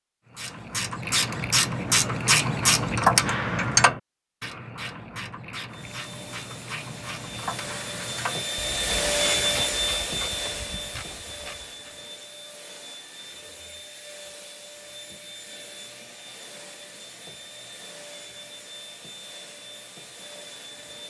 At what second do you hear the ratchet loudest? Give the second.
3 s.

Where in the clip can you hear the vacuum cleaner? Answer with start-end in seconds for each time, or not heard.
5.7-21.0.